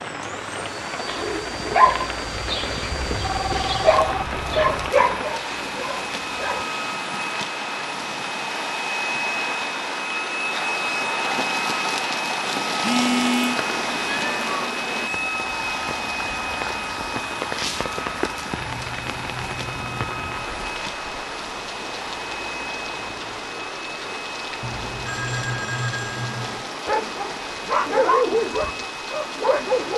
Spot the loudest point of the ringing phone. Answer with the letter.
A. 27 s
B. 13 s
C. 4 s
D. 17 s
B.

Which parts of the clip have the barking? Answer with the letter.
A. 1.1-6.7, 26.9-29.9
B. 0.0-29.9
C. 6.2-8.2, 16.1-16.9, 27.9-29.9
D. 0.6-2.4
A.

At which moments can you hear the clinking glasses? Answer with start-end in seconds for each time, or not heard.
not heard.